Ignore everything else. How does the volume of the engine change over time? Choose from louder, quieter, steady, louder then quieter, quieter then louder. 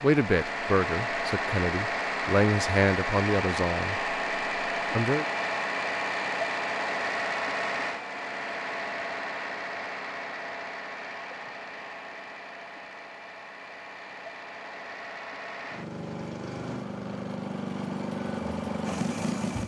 quieter then louder.